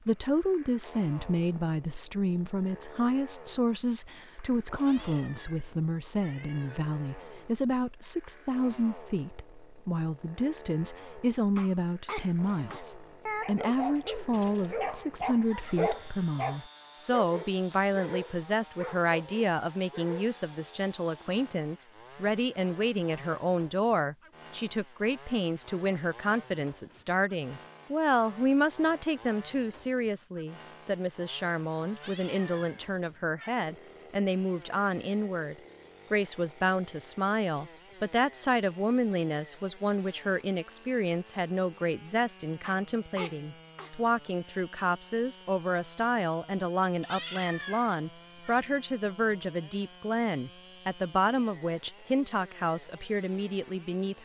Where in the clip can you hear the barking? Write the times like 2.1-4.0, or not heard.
13.4-20.4.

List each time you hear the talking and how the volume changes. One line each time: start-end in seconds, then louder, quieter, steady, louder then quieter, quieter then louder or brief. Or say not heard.
0.1-54.1 steady.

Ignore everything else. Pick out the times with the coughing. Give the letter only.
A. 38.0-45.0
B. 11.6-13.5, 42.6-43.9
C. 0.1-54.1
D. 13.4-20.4
B.